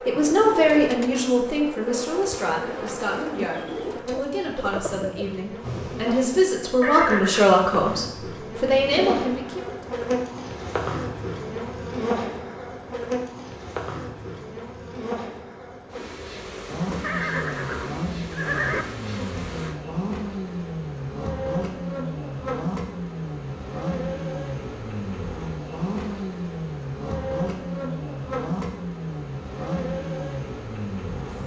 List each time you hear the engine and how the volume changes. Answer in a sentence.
The engine can be heard from 16.6 to 31.4 s, at a steady volume.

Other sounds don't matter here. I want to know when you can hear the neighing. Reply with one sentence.
You can hear the neighing from 6.8 to 7.5 s and from 17.0 to 18.9 s.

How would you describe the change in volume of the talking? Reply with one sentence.
The loudness of the talking goes down, then up.